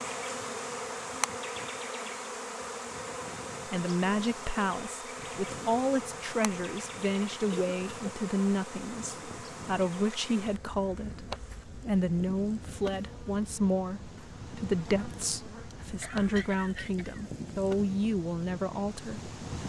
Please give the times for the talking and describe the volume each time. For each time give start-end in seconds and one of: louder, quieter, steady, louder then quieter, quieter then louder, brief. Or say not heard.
3.6-19.3 steady.